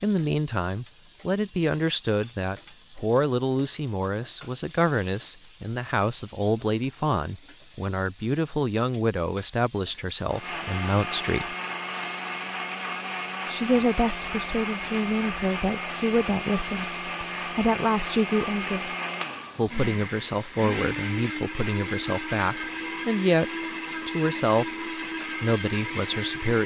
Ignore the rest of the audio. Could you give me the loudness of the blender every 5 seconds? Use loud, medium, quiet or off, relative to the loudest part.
off, off, loud, loud, loud, loud.